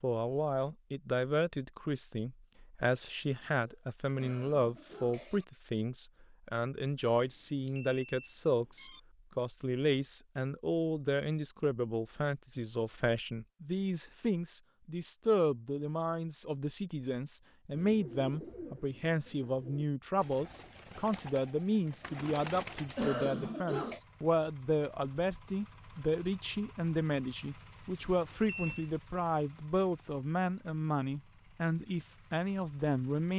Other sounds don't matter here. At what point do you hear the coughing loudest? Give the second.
23 s.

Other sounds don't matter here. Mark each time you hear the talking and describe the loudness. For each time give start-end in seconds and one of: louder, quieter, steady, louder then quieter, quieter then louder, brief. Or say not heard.
0.0-33.3 steady.